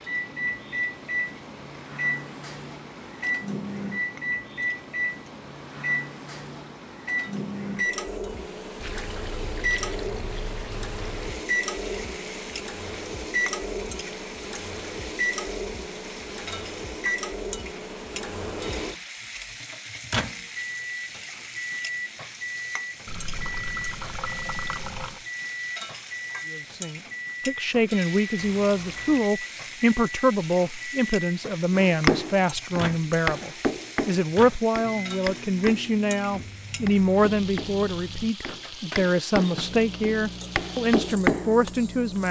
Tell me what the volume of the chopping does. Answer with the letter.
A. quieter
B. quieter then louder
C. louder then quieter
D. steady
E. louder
B.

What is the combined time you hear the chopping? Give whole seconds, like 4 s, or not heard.
10 s.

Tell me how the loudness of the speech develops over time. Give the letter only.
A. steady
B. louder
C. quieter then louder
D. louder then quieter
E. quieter
A.